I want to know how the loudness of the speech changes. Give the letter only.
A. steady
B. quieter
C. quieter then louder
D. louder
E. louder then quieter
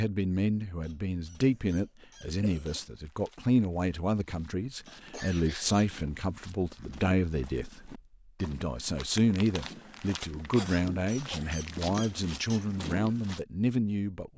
A.